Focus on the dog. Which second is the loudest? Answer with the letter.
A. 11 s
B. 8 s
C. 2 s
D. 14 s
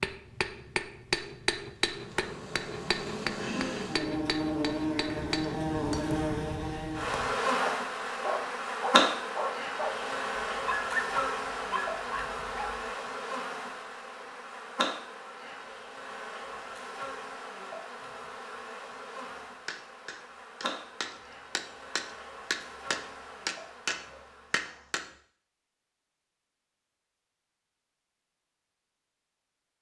A.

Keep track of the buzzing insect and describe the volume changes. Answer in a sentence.
The loudness of the buzzing insect goes down.